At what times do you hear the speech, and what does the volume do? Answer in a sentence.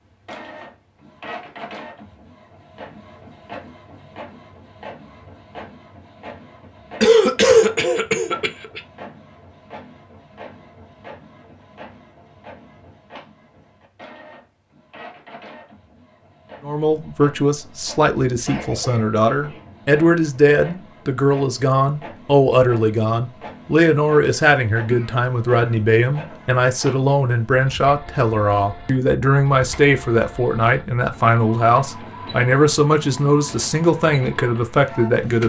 The speech can be heard from 16.6 to 35.4 s, at a steady volume.